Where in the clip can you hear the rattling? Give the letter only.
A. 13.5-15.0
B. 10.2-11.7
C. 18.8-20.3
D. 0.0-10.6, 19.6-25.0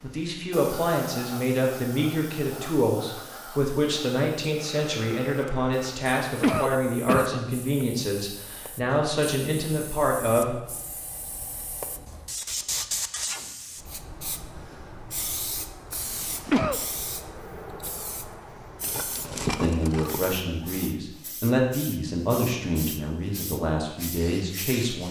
C.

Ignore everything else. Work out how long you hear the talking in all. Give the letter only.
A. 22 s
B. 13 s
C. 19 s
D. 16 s
D.